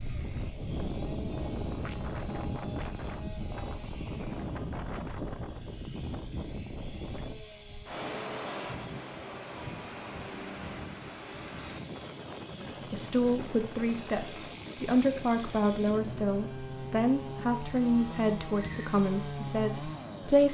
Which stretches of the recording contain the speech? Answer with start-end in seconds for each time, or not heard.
12.9-20.4.